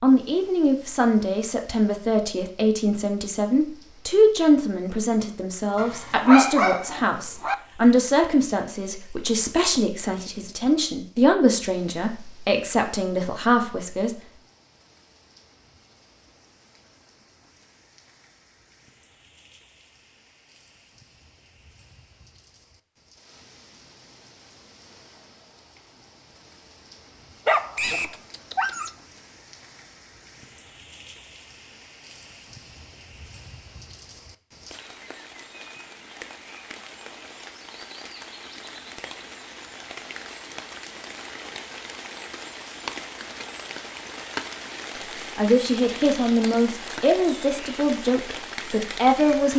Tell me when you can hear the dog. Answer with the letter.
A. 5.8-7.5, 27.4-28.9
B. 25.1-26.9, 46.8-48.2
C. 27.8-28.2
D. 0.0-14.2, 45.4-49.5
A.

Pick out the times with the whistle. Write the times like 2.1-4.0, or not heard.
27.8-28.2.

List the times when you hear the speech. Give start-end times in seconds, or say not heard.
0.0-14.2, 45.4-49.5.